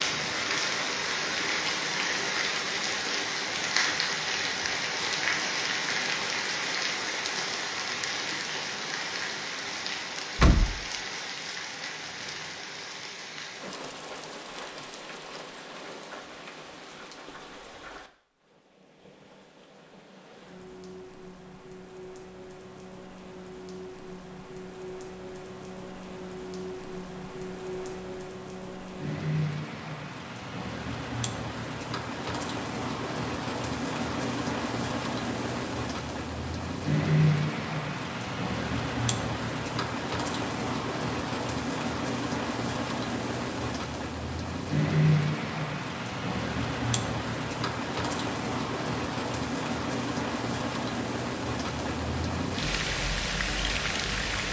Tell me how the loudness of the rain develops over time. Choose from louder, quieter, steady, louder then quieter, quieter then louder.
quieter then louder.